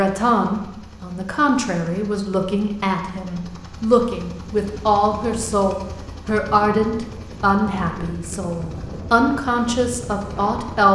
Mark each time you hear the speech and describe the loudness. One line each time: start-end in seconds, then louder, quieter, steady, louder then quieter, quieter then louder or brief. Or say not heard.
0.0-10.9 steady.